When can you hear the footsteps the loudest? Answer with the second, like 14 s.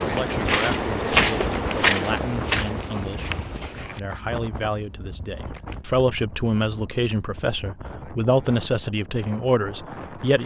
1 s.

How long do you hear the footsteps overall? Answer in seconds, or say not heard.
4 s.